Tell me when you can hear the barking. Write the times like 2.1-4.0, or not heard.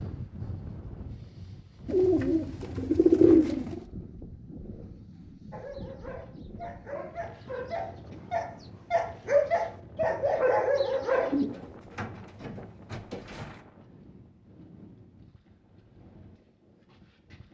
5.5-11.4.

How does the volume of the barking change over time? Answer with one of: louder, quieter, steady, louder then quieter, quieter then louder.
louder.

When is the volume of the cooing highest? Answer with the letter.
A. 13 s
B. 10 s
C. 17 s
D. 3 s
D.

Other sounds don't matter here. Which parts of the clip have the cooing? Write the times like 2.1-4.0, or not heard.
1.9-3.8, 11.3-13.6.